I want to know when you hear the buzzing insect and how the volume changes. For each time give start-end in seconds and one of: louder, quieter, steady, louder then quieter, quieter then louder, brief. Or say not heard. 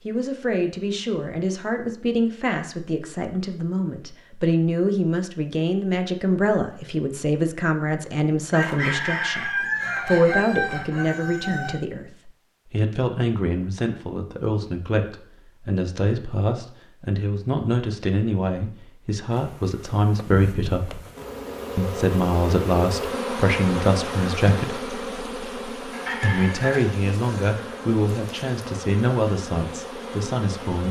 19.3-30.8 louder then quieter.